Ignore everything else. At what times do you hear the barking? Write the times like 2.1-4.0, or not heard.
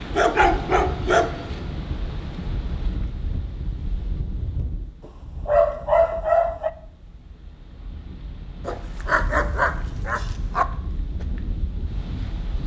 0.1-1.6, 5.5-6.7, 8.7-10.7.